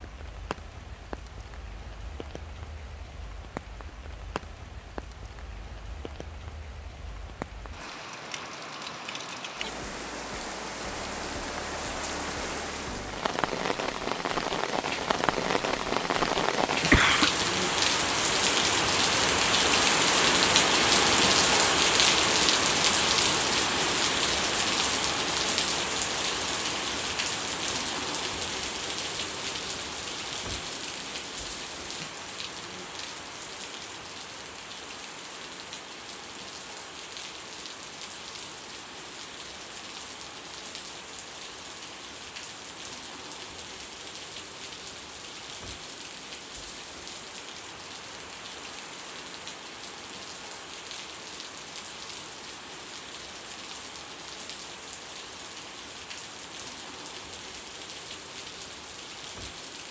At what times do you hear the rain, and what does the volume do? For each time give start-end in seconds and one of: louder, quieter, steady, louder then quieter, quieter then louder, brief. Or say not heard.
0.0-59.8 louder then quieter.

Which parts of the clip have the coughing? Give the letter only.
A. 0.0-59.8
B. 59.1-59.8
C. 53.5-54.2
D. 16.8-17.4
D.